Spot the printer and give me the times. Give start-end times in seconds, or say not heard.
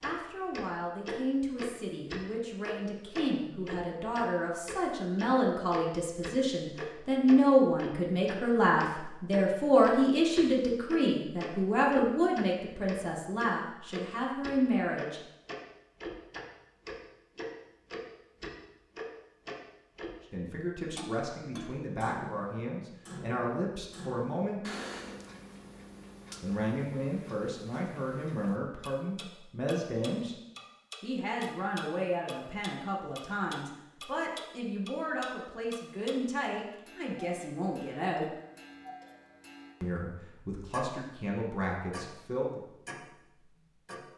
not heard.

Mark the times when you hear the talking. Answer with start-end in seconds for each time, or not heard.
0.0-15.2, 20.3-24.6, 26.4-30.4, 31.0-38.3, 39.8-42.6.